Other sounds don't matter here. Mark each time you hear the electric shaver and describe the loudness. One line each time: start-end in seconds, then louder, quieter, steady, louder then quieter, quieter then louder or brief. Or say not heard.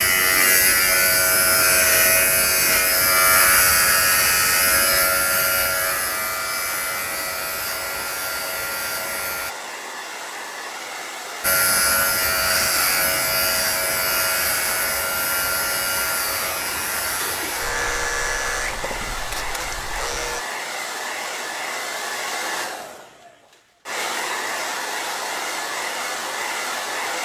0.0-9.6 quieter
11.4-20.4 quieter.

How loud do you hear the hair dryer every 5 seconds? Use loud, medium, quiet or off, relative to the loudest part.
medium, medium, medium, loud, loud, loud.